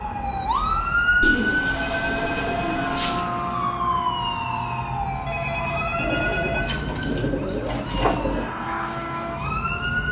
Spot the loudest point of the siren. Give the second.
1 s.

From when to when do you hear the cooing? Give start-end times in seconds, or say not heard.
1.2-3.2, 6.0-8.5.